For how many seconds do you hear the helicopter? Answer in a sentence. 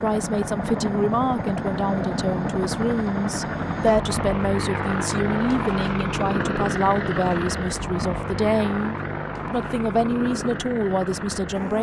You can hear the helicopter for 12 seconds altogether.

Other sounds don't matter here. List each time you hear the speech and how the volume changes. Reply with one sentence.
The speech can be heard from 0.0 to 11.7 s, at a steady volume.